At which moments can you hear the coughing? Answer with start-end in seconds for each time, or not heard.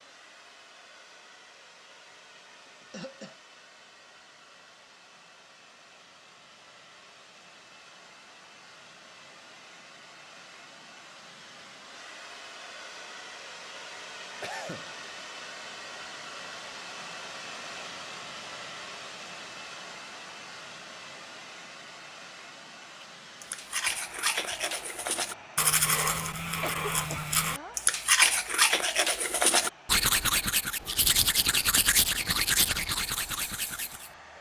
2.1-3.4, 14.4-14.9, 26.4-27.8.